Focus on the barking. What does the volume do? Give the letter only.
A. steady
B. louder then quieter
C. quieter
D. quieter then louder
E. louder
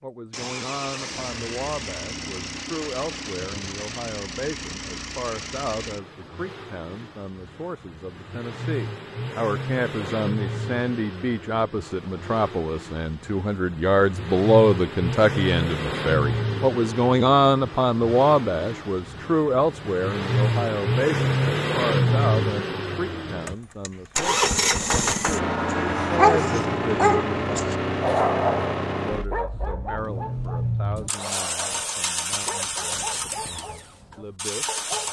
C.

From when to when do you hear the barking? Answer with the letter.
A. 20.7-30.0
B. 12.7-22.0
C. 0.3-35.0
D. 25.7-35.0
D.